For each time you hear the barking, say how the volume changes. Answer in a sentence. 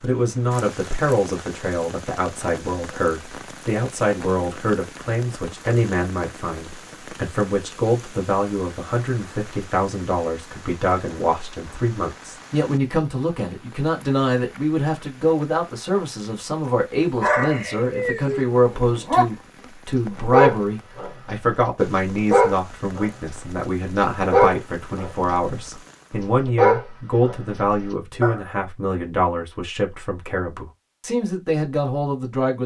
You can hear the barking briefly from 17.1 to 19.2 s; and from 19.9 to 28.4 s, getting quieter then louder.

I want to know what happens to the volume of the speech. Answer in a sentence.
The volume of the speech stays about the same.